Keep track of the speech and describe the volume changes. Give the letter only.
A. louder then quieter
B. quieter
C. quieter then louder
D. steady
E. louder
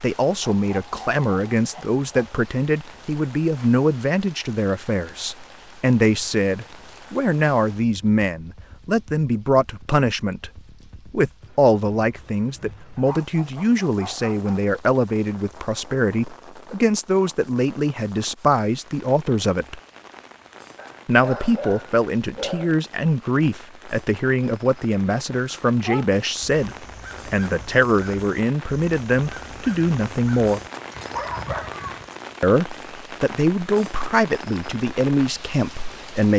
D.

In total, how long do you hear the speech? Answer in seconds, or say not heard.
33 s.